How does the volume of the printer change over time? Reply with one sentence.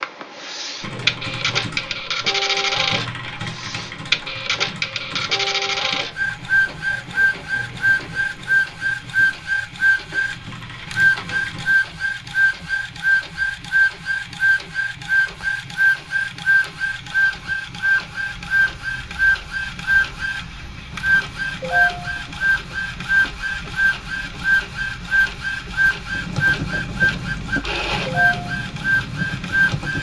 The volume of the printer stays about the same.